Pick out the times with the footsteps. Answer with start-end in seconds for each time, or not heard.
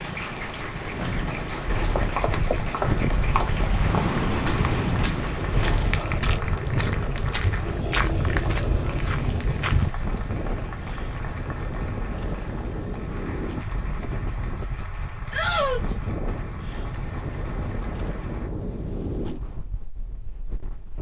1.9-9.9.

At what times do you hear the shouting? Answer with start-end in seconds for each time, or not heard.
15.3-15.9.